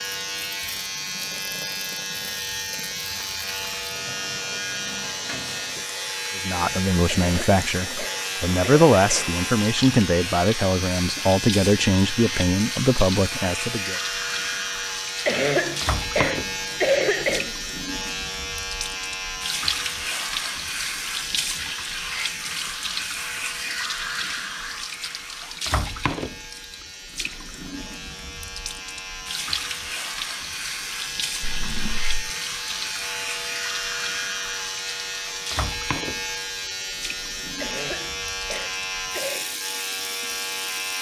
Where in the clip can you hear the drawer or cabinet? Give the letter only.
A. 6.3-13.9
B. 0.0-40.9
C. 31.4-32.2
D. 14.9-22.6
C.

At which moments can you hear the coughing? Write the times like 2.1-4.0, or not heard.
7.0-9.3, 15.2-17.5, 37.6-39.5.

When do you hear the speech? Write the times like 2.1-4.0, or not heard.
6.3-13.9.